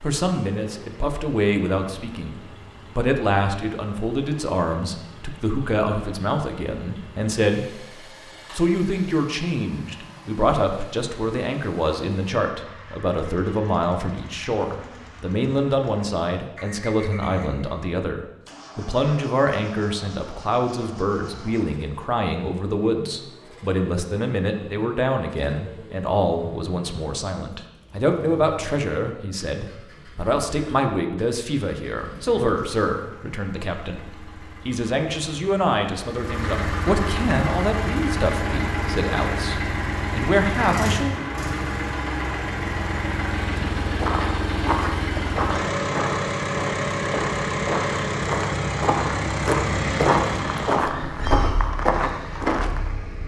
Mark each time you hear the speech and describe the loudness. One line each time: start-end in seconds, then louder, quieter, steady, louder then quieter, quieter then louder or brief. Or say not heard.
0.0-7.8 steady
8.5-41.2 steady.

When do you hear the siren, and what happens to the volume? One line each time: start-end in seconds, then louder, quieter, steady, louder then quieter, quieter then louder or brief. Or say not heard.
not heard.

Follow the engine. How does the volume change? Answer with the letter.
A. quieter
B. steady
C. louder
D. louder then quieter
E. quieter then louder
C.